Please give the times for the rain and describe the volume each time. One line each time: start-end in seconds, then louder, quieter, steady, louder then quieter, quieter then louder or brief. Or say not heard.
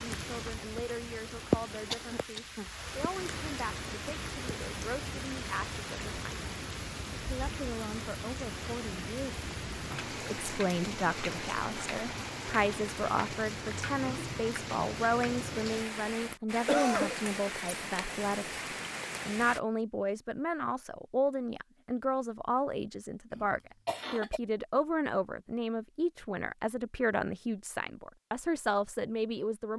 0.0-19.6 steady.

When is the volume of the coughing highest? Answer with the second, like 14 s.
17 s.